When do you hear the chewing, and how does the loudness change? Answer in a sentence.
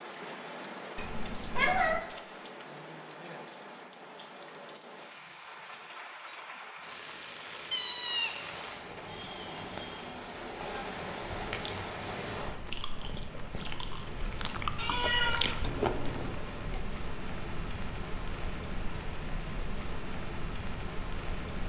The chewing can be heard from 11.3 to 16.4 s, getting louder.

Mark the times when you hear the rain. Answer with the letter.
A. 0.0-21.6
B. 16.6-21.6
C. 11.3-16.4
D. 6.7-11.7
A.